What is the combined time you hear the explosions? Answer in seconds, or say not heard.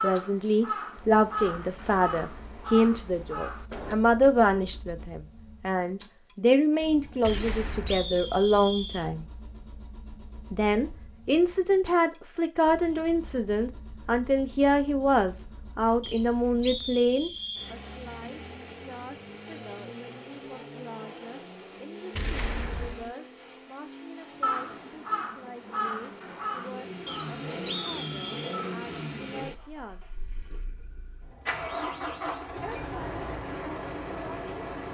2 s.